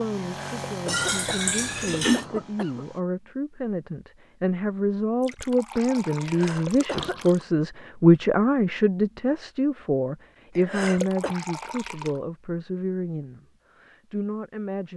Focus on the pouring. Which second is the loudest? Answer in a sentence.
The loudest moment of the pouring is at 2 seconds.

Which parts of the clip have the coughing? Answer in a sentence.
The coughing can be heard from 0.2 to 2.9 s, from 6.2 to 7.2 s and from 10.6 to 11.3 s.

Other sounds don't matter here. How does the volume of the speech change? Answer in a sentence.
The volume of the speech goes up, then down.